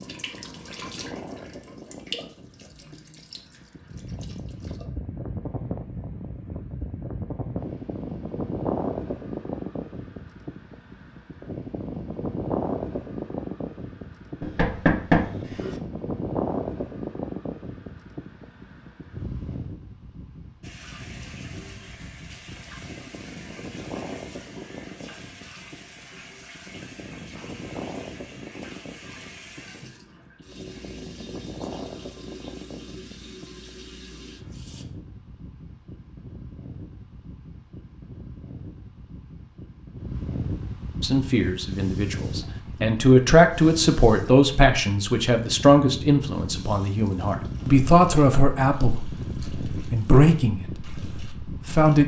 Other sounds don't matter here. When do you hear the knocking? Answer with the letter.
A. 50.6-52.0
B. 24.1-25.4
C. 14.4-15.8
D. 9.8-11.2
C.